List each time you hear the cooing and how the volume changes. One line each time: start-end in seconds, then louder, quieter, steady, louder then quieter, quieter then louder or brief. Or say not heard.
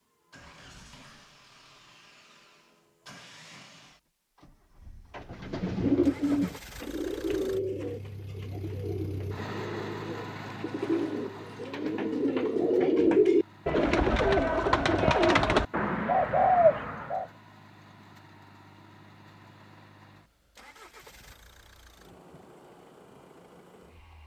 5.2-17.2 quieter then louder.